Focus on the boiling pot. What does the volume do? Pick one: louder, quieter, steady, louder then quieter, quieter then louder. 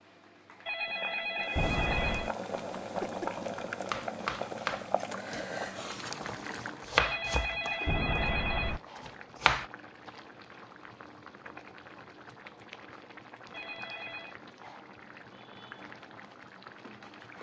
quieter.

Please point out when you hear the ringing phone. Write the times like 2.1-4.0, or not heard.
0.7-2.3, 7.0-8.8, 13.5-14.3.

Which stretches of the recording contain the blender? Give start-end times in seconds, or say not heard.
not heard.